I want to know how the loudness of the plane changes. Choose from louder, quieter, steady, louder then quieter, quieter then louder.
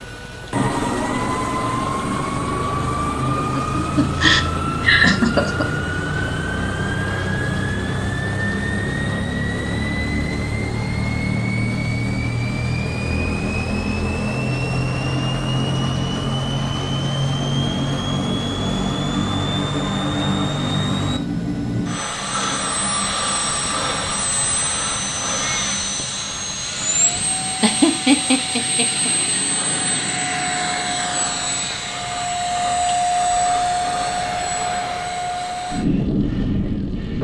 steady.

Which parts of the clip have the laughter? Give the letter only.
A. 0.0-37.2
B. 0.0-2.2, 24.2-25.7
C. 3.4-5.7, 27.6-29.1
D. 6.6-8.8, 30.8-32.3
C.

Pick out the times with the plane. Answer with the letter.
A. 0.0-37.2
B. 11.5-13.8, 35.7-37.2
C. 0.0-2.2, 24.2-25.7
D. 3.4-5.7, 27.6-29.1
A.